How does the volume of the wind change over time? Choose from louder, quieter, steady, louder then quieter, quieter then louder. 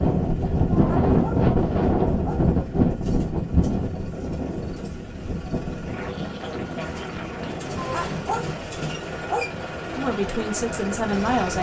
quieter.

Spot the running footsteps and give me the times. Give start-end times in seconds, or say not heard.
not heard.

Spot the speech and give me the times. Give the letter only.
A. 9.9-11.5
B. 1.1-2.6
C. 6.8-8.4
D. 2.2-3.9
A.